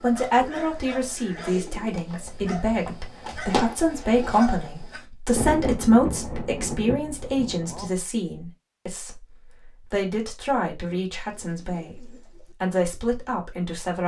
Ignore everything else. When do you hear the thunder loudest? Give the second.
6 s.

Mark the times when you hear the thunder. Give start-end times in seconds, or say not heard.
5.3-7.9.